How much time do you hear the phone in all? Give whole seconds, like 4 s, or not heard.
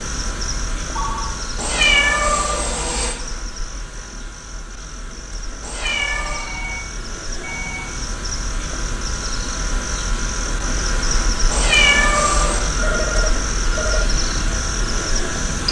4 s.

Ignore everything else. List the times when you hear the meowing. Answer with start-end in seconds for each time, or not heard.
1.6-3.1, 5.6-6.5, 11.5-12.7.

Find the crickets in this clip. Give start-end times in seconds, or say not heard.
0.0-15.6.